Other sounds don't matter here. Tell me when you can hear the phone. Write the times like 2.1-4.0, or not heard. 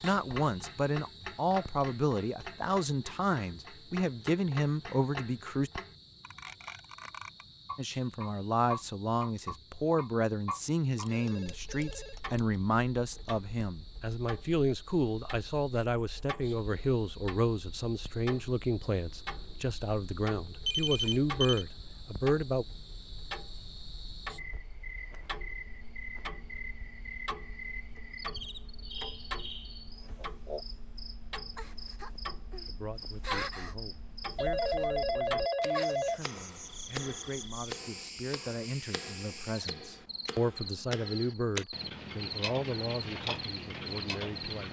11.0-12.4, 20.6-21.6, 34.4-36.2.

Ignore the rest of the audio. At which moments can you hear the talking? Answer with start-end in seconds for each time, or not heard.
0.0-5.7, 7.8-22.6, 32.6-44.6.